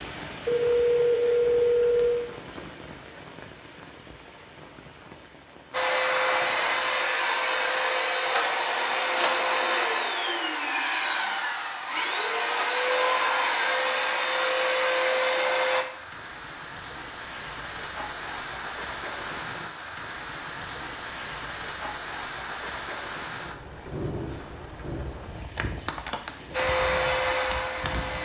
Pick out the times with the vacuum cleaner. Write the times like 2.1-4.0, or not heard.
5.7-15.8, 26.5-28.2.